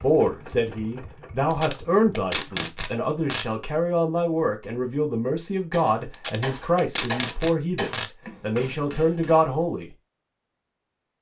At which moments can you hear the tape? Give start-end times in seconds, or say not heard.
1.5-3.5, 6.1-8.1.